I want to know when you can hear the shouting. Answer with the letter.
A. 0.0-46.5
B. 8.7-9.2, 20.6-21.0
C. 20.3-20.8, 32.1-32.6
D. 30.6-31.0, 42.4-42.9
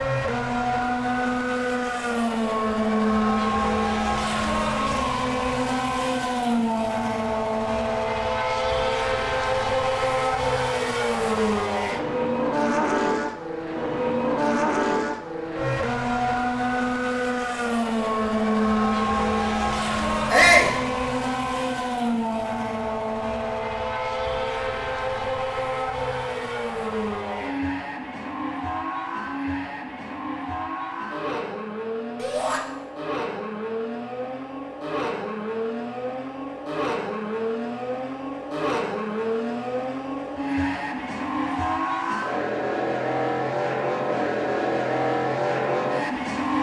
C.